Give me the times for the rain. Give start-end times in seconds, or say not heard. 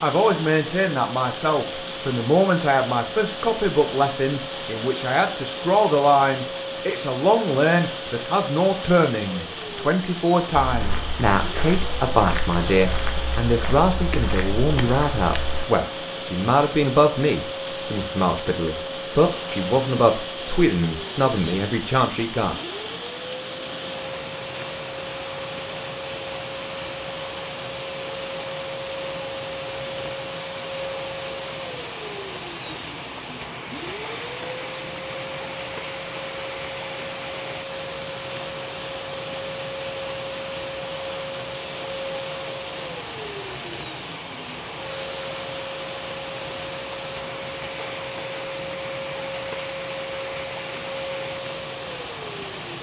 0.0-52.7.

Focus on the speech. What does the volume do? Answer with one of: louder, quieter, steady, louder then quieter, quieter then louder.
steady.